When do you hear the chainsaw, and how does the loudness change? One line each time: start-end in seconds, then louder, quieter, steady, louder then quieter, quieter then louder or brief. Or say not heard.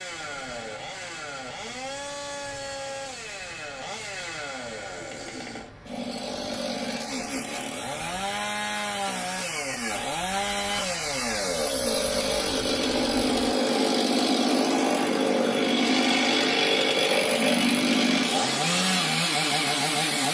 0.0-20.2 louder.